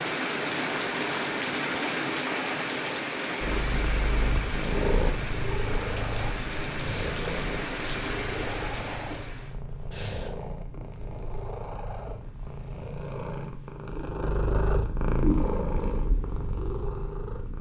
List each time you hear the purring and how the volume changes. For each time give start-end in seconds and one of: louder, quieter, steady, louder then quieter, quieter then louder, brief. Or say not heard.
3.4-17.5 quieter then louder.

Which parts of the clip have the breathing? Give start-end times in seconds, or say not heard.
6.8-7.2, 9.9-10.3.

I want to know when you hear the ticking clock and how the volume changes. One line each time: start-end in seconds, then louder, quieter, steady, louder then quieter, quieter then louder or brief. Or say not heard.
not heard.